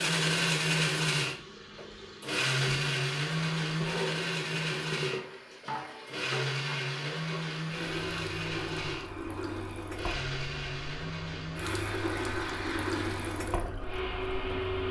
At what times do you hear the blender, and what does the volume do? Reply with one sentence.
You can hear the blender from 0.0 to 14.8 s, getting quieter.